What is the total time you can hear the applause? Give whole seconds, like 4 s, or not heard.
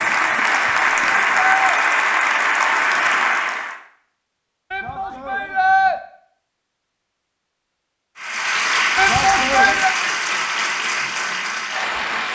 8 s.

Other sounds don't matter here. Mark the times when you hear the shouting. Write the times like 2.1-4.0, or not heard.
0.5-1.8, 4.7-6.0, 8.9-9.9.